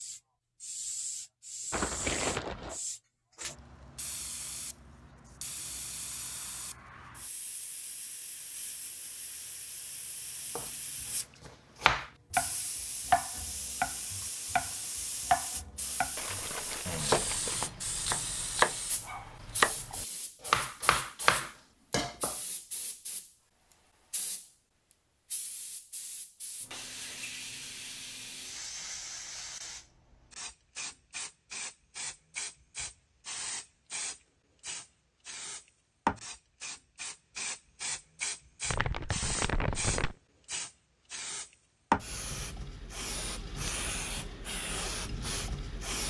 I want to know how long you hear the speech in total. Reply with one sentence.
The speech can't be heard in this clip.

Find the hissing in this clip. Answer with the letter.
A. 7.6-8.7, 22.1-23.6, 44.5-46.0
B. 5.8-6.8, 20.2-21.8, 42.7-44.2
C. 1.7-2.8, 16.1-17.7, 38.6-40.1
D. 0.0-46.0
D.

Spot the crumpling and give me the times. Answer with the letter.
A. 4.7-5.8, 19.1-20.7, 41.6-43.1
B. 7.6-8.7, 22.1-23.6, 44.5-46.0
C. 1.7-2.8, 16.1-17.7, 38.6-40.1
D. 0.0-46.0
C.